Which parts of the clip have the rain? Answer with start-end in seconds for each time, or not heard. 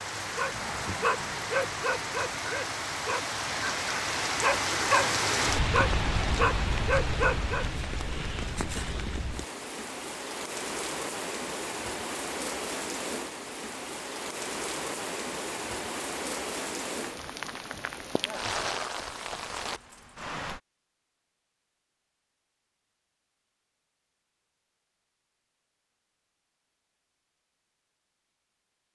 0.0-20.6.